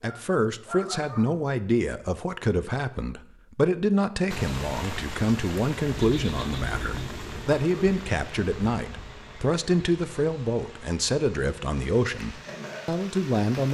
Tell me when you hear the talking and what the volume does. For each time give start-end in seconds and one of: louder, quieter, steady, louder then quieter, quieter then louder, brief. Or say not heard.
0.0-13.6 steady.